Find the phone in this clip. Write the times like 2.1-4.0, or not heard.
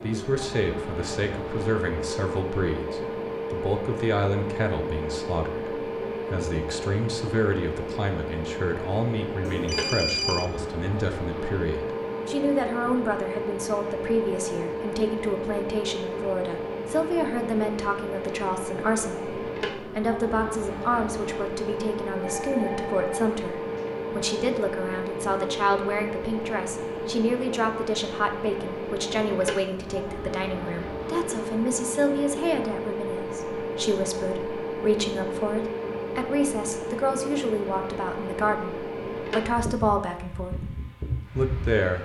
9.4-10.4, 22.2-23.9.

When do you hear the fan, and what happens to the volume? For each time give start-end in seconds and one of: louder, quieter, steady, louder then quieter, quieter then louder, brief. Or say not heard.
0.0-41.9 steady.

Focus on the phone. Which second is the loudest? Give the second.
10 s.